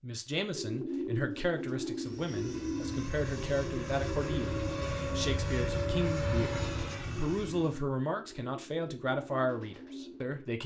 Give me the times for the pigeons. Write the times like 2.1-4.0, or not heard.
0.5-10.4.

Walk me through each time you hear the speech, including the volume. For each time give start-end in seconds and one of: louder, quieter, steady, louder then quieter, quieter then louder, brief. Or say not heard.
0.0-10.6 steady.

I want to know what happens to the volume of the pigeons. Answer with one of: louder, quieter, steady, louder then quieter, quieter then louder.
quieter.